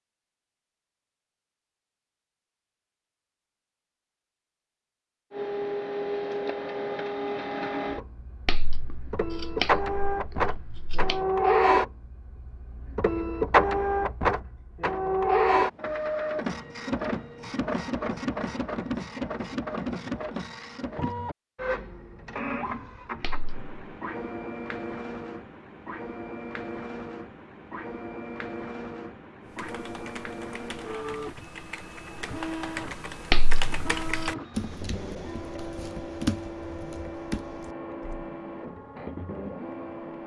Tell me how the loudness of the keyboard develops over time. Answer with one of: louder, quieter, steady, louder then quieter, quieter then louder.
louder.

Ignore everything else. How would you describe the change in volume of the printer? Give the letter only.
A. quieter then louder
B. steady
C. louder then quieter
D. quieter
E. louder
D.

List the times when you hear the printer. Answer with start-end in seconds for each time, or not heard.
5.3-40.2.